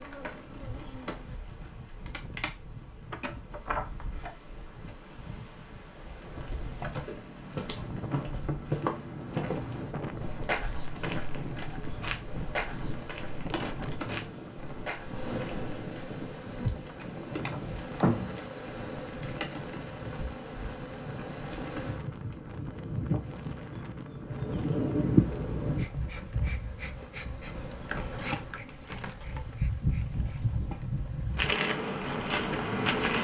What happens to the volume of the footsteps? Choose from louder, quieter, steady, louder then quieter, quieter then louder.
louder then quieter.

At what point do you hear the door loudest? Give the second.
18 s.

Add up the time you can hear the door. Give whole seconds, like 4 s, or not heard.
2 s.